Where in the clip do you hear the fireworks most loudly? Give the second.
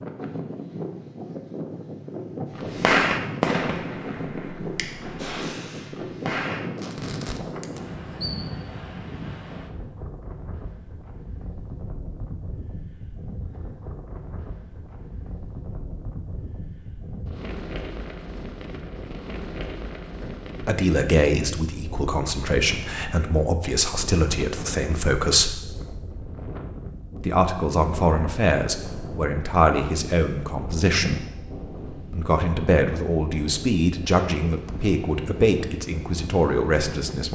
3 s.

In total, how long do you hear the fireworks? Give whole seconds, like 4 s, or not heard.
6 s.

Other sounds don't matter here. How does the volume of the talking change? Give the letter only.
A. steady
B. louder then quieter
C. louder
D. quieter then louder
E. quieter
A.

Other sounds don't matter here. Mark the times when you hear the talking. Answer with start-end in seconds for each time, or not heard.
20.2-25.6, 27.1-31.2, 32.1-37.3.